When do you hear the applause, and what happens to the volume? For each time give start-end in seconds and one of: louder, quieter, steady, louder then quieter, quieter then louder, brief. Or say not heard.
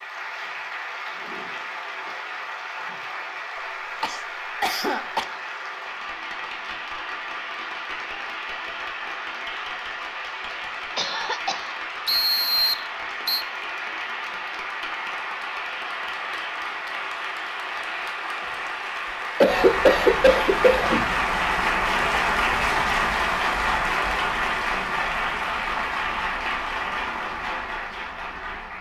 0.0-28.7 louder.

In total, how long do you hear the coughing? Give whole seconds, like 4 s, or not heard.
4 s.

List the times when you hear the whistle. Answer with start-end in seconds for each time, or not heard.
12.1-13.4.